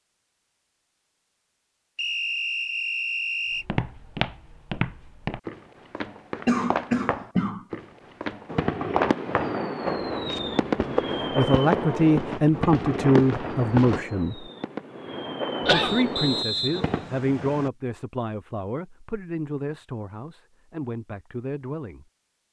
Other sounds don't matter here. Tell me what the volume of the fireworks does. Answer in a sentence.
The volume of the fireworks goes down, then up.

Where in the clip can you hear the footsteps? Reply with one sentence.
The footsteps can be heard from 3.5 to 14.0 s.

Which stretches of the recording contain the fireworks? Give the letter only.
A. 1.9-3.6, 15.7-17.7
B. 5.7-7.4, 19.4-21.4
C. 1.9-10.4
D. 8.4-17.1
D.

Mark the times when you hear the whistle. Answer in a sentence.
The whistle can be heard from 1.9 to 3.6 s and from 15.7 to 17.7 s.